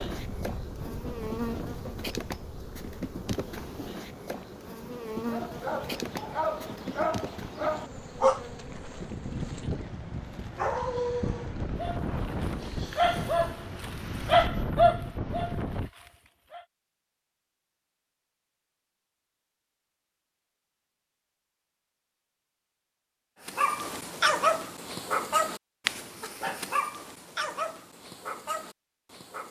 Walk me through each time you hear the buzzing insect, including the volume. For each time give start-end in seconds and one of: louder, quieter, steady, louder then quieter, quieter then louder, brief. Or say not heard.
0.0-13.8 quieter.